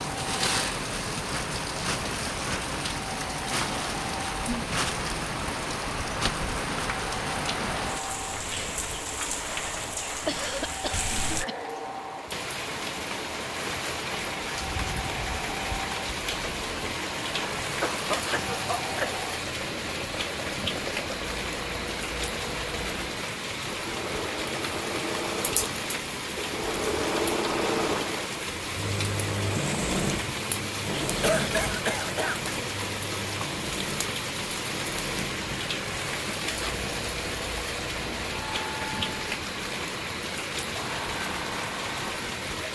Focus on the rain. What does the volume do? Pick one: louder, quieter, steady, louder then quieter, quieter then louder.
steady.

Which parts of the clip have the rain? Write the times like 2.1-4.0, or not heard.
0.0-42.6.